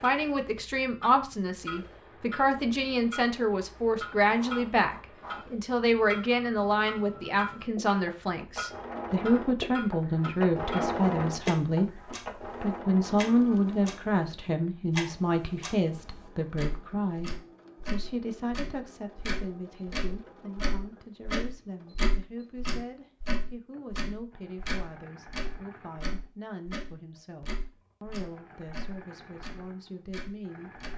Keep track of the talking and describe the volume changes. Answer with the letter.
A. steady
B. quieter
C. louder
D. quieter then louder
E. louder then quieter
B.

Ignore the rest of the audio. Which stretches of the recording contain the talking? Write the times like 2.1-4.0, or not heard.
0.0-30.7.